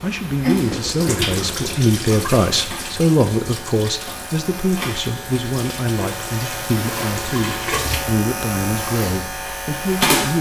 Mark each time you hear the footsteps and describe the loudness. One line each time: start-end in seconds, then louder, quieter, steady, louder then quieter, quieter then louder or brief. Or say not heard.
not heard.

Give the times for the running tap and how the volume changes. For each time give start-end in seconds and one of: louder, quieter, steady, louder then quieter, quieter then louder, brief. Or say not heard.
0.0-8.2 quieter then louder.